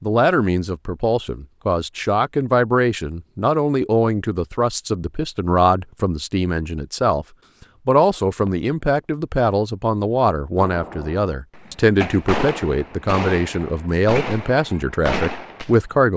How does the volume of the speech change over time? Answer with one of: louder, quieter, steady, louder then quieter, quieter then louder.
steady.